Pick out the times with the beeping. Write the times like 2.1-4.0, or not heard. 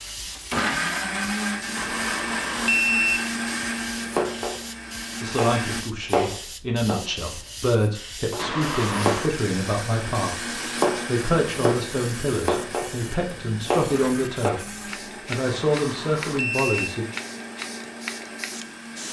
1.8-3.2, 8.3-9.3, 15.4-16.9.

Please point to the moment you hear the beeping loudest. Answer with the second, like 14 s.
3 s.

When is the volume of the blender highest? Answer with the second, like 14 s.
1 s.